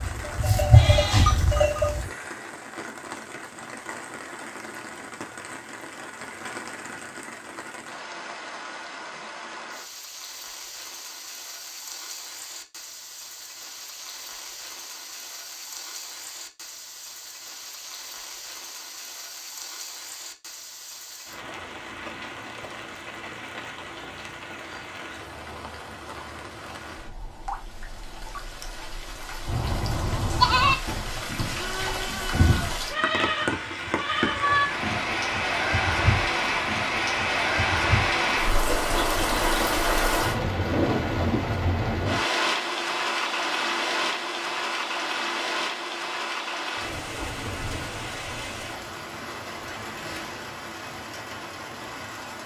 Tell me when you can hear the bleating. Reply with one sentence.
The bleating can be heard from 0.0 to 2.1 s and from 29.4 to 38.1 s.